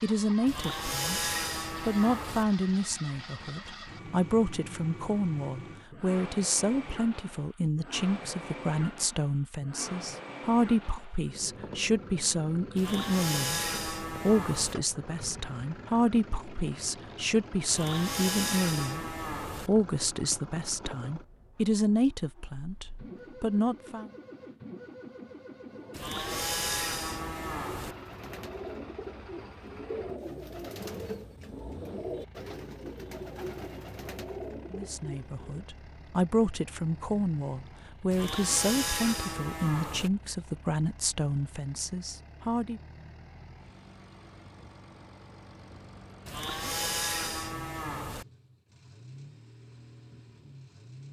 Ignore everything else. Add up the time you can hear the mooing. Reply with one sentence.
The mooing can be heard for 12 seconds in total.